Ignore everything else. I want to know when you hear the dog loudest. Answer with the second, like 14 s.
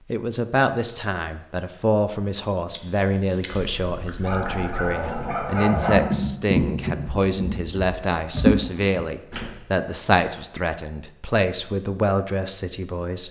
6 s.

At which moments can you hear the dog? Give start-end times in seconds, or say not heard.
4.2-6.0.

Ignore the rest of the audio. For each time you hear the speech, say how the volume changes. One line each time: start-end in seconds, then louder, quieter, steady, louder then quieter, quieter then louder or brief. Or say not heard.
0.1-13.2 steady.